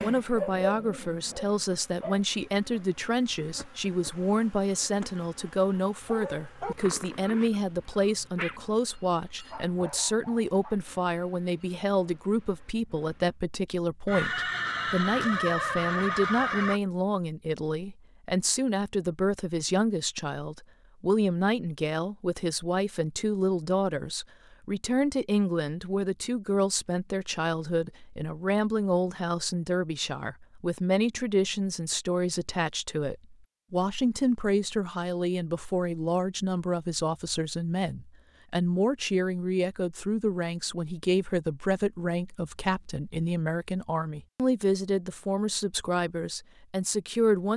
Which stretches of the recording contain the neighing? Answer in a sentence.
You can hear the neighing from 14.1 to 16.8 s.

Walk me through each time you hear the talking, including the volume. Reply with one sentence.
You can hear the talking from 0.0 to 47.5 s, at a steady volume.